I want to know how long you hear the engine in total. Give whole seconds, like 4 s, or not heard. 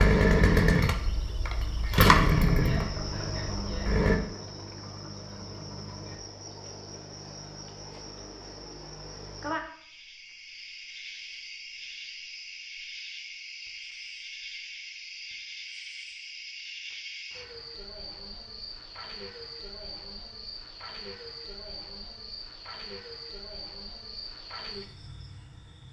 4 s.